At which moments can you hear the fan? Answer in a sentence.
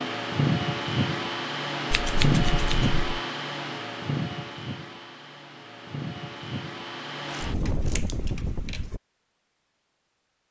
The fan can be heard from 0.0 to 9.0 s.